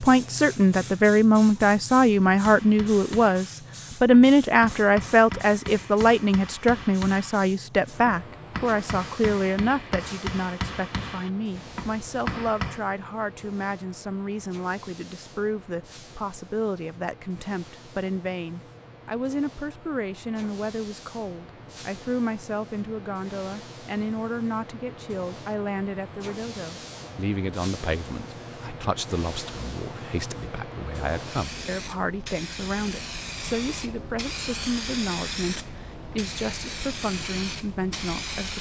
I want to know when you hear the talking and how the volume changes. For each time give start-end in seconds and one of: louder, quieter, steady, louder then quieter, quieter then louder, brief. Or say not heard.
0.0-38.5 quieter.